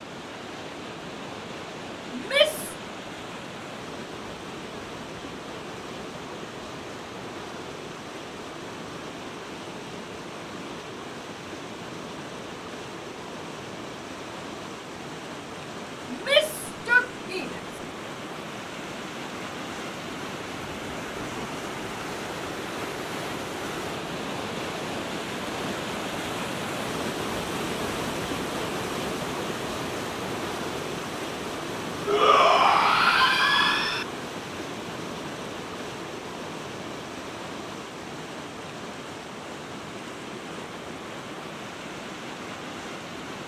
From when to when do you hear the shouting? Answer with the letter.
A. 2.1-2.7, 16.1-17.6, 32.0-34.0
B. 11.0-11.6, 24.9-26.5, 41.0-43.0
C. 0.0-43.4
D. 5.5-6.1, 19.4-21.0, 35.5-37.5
A.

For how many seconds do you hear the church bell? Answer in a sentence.
You can't hear the church bell here.